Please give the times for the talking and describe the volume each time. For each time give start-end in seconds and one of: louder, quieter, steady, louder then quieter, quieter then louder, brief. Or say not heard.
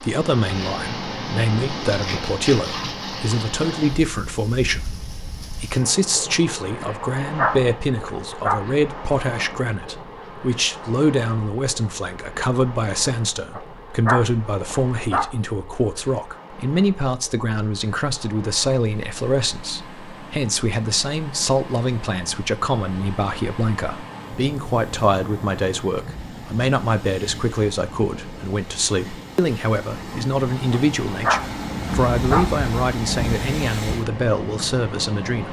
0.0-35.4 steady.